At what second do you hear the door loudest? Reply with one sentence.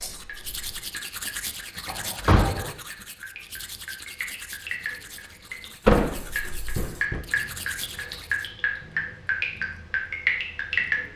The loudest moment of the door is at 6 seconds.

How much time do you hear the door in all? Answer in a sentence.
You can hear the door for 2 seconds altogether.